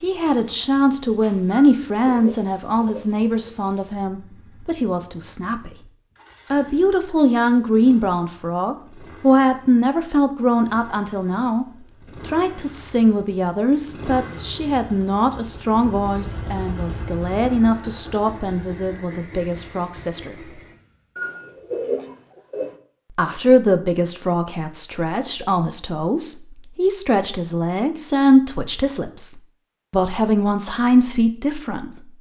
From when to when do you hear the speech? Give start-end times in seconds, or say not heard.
0.0-5.7, 6.5-20.4, 23.1-32.1.